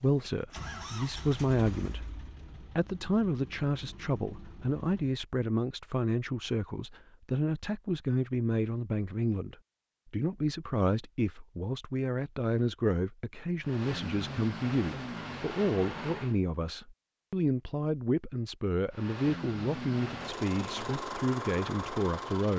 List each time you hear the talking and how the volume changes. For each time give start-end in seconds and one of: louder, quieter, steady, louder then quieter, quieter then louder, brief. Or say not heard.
0.0-22.5 steady.